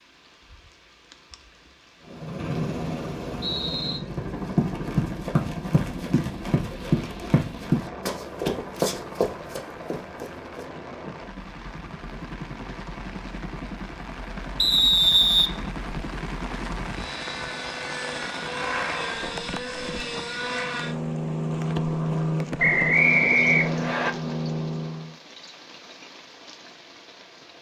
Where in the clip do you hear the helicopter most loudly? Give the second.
22 s.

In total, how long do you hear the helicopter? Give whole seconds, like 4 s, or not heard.
23 s.